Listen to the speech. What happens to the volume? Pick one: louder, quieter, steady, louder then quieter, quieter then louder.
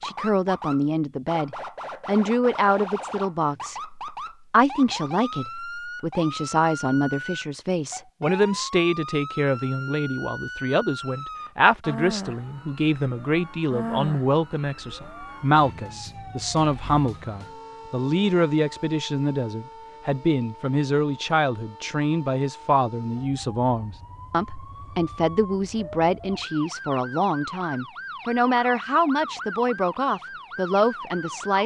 steady.